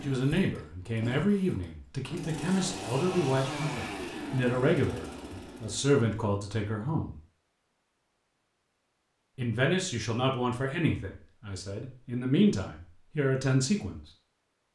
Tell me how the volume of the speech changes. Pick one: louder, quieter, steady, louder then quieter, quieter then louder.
steady.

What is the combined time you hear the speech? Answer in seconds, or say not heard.
12 s.